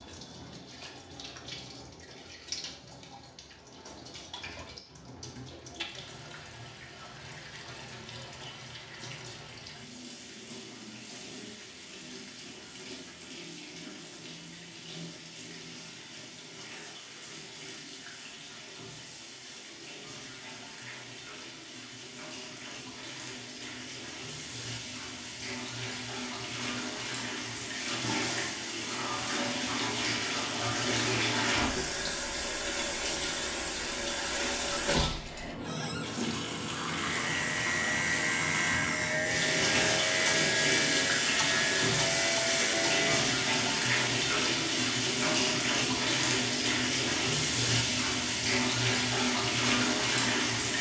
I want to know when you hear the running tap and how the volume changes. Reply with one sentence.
You can hear the running tap from 0.0 to 50.7 s, getting louder.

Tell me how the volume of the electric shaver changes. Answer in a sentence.
The loudness of the electric shaver stays about the same.